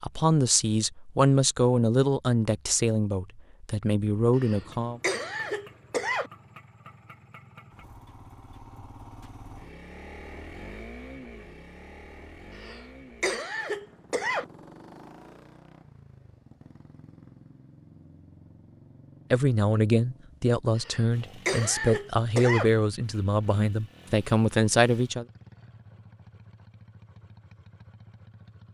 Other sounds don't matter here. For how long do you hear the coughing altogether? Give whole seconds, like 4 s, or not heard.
6 s.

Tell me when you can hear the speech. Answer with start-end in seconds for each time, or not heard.
0.0-5.0, 19.3-25.2.